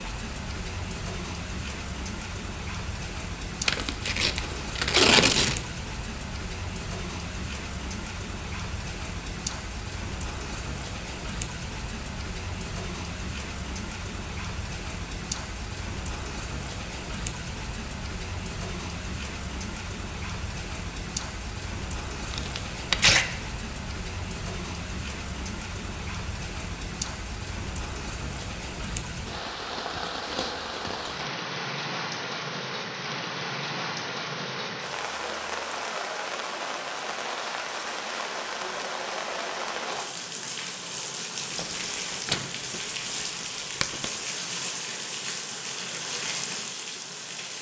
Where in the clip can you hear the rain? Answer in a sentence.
You can hear the rain from 0.0 to 47.5 s.